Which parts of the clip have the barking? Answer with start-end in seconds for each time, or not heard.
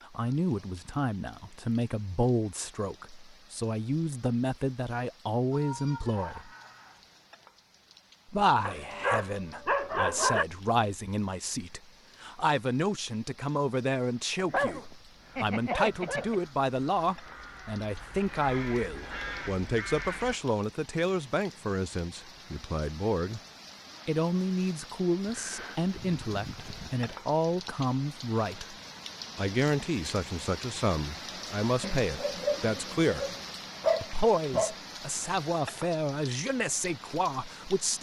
8.7-10.4, 14.3-16.4, 31.8-34.8.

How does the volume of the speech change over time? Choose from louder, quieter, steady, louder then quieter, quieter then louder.
steady.